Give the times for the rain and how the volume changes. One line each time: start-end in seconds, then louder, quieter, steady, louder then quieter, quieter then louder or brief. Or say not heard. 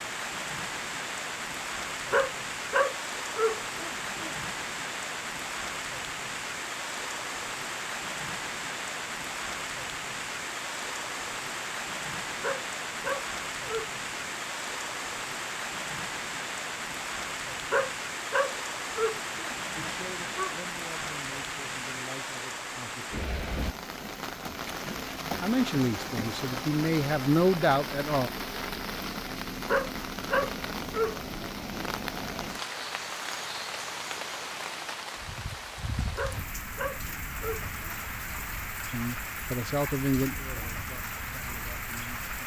0.0-42.4 steady.